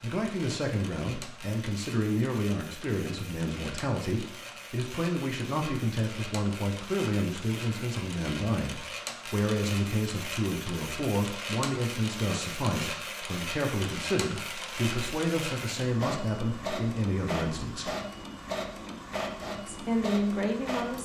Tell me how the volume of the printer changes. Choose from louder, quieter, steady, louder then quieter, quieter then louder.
louder.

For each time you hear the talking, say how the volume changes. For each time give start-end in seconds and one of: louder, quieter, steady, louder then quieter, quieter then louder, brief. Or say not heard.
0.0-17.9 steady
19.6-20.9 brief.